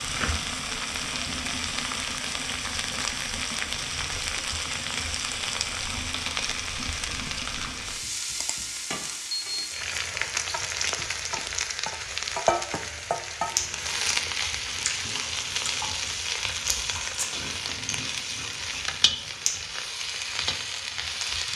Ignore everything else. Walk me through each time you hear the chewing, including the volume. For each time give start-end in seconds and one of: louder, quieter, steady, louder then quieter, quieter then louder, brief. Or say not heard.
13.6-19.5 quieter.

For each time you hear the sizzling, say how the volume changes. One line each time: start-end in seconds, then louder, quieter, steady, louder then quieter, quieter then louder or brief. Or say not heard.
0.0-21.5 steady.